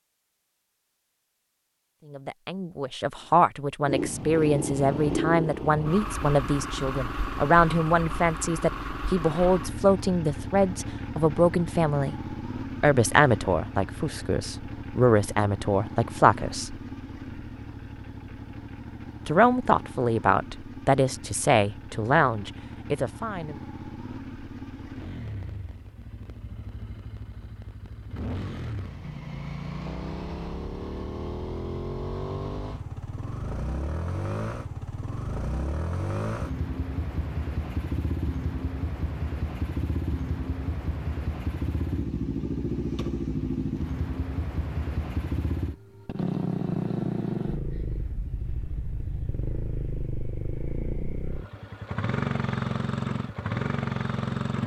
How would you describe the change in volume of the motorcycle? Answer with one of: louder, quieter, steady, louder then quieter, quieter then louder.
quieter then louder.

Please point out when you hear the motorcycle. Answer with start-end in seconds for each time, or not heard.
3.9-54.6.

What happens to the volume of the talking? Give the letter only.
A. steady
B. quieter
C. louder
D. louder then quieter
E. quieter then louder
A.